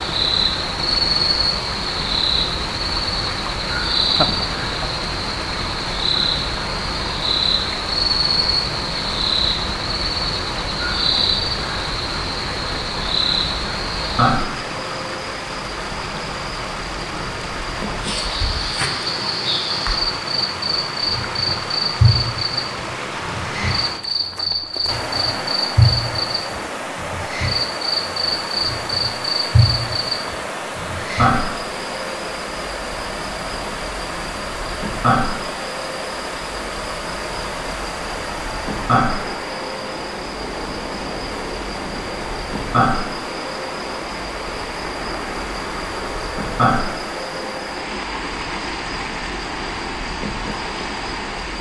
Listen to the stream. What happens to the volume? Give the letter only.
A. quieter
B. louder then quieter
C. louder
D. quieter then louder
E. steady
E.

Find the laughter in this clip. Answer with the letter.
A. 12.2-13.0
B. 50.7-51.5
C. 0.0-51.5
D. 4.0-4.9
D.